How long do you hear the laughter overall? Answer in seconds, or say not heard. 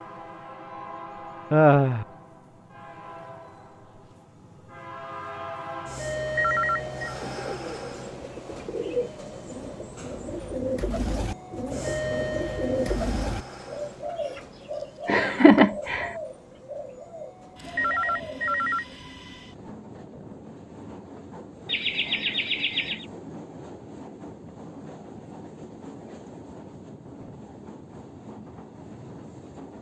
3 s.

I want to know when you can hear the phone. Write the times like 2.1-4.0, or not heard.
6.3-7.2, 17.8-18.9.